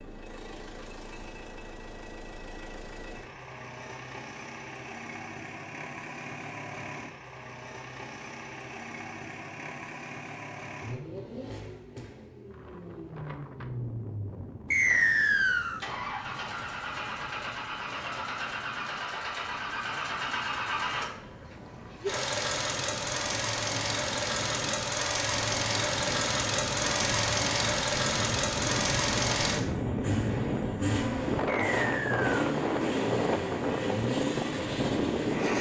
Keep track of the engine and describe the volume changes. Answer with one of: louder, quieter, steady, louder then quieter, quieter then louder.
louder.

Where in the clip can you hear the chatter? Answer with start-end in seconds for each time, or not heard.
not heard.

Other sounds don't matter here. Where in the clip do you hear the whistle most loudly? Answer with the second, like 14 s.
15 s.